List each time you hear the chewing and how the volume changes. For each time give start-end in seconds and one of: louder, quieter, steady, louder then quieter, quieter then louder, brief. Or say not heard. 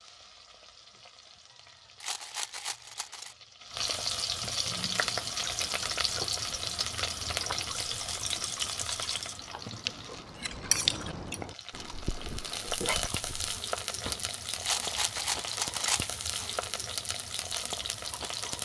4.7-13.6 louder then quieter.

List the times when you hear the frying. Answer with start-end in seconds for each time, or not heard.
0.0-18.6.